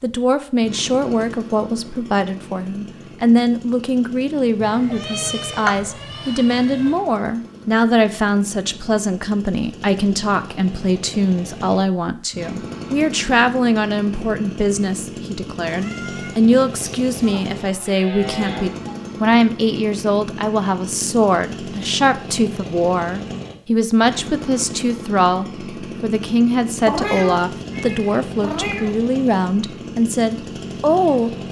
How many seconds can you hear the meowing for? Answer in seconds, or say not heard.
6 s.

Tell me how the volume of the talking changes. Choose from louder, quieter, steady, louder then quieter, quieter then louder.
steady.